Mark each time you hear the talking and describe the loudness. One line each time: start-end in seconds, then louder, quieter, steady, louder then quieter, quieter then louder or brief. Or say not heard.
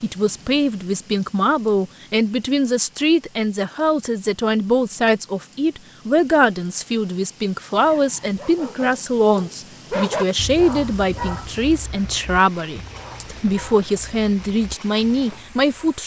0.0-16.0 steady.